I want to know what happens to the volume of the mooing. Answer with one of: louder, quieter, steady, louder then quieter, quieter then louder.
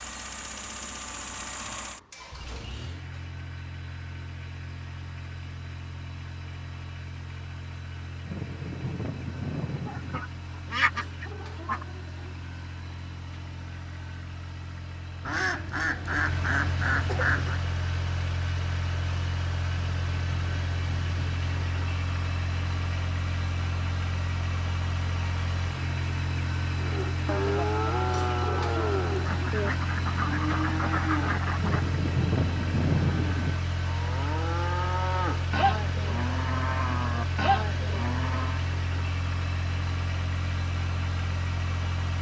steady.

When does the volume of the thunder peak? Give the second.
33 s.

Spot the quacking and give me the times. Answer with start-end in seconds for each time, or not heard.
9.8-11.8, 15.2-17.6, 29.2-31.9.